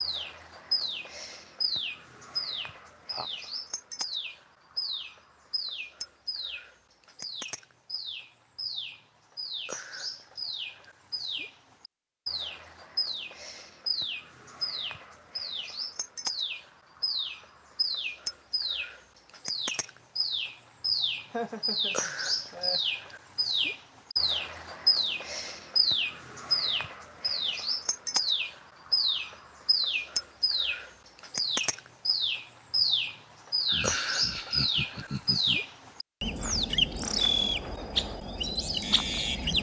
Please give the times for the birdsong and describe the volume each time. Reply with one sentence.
You can hear the birdsong from 0.0 to 39.5 s, getting louder.